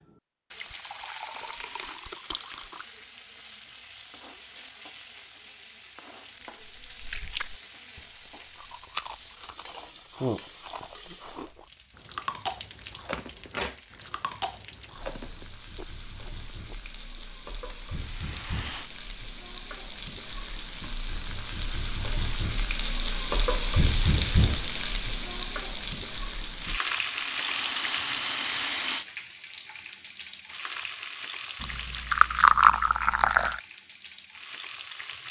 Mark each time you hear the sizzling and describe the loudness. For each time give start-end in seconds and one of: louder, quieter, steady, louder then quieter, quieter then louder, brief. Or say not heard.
0.0-35.2 louder then quieter.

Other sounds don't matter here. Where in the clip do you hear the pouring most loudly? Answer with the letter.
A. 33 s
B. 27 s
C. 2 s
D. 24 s
A.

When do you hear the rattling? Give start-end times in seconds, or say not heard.
1.4-2.0, 17.9-18.9, 26.6-29.1.